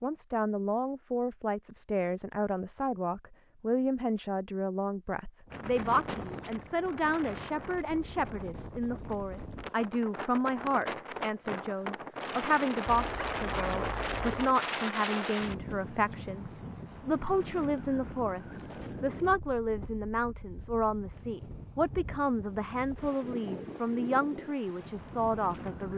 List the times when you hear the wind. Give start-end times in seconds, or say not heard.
5.5-25.9.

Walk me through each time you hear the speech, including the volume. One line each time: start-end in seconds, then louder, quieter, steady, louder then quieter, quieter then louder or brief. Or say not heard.
0.0-25.9 steady.